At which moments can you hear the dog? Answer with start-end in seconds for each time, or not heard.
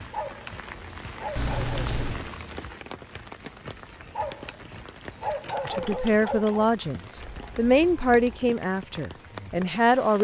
0.0-1.8, 3.9-6.7.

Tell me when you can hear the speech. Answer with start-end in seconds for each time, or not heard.
5.7-10.1.